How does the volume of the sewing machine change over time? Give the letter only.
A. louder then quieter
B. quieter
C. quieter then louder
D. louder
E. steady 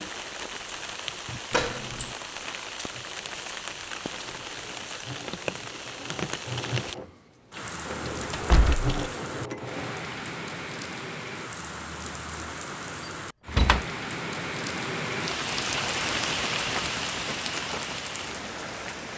D.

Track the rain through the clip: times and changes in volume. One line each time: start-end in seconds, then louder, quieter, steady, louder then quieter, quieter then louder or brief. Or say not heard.
0.0-19.1 louder.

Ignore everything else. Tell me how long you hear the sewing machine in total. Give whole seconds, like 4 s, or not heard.
7 s.